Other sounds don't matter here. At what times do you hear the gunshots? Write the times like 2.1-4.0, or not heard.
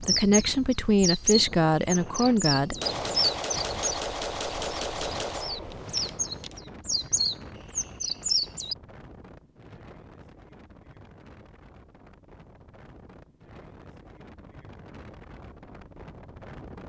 2.8-6.6.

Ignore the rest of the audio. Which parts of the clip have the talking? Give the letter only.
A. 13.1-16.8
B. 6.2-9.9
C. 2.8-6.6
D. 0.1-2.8
D.